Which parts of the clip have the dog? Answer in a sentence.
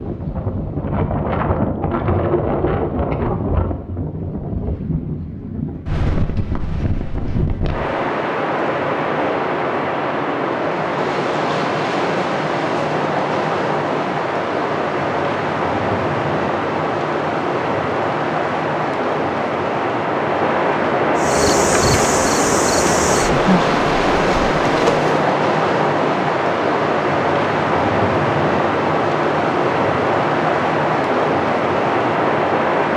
You can't hear the dog here.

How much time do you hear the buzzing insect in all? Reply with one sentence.
You can hear the buzzing insect for 4 seconds altogether.